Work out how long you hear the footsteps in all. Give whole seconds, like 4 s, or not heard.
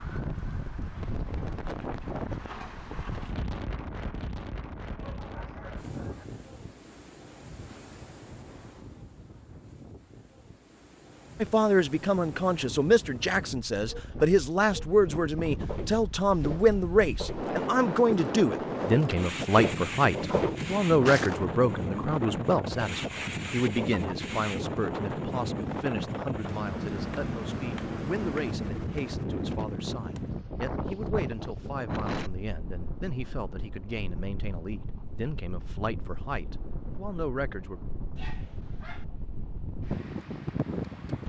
6 s.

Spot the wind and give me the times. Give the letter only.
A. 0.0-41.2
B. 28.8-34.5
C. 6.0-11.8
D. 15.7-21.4
A.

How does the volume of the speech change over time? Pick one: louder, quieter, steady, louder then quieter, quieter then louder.
quieter.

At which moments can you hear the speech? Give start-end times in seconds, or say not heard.
11.4-37.8.